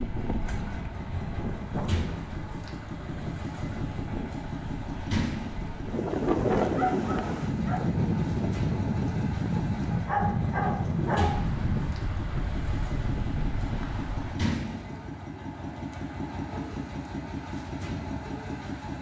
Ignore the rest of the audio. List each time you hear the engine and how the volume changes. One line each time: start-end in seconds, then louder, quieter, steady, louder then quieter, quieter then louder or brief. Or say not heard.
0.0-18.9 steady.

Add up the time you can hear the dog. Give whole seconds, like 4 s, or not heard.
3 s.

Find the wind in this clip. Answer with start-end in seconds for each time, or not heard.
0.0-14.5.